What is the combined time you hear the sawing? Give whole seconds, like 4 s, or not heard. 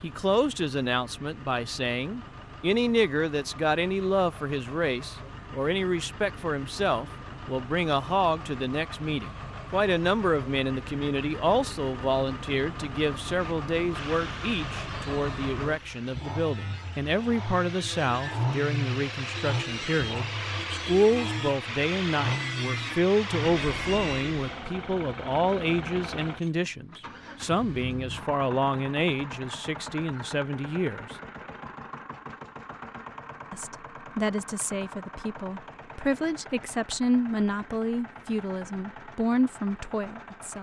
11 s.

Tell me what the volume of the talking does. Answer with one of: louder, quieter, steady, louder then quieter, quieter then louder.
steady.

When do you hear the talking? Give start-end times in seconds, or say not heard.
0.0-31.1, 33.5-40.5.